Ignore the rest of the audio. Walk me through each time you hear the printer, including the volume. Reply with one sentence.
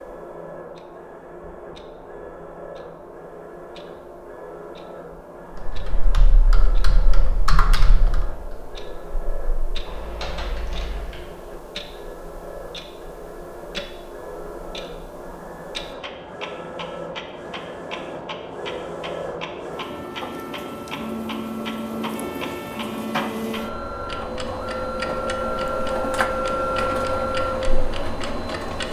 The printer can be heard from 0.0 to 28.8 s, getting louder.